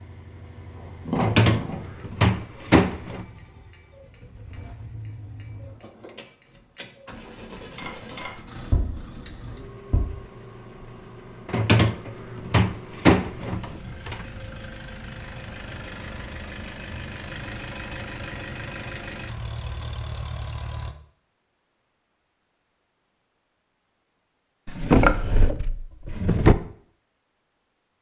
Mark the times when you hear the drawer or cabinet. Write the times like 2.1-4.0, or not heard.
1.1-3.2, 11.4-14.2, 24.6-26.6.